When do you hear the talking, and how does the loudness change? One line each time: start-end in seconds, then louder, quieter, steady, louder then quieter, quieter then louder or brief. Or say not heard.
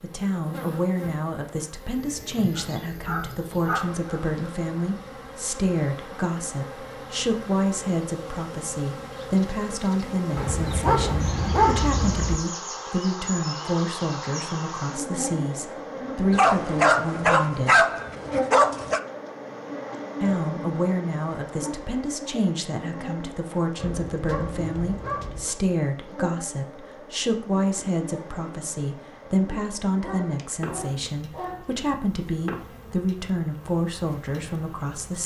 0.0-17.9 steady
20.2-35.2 steady.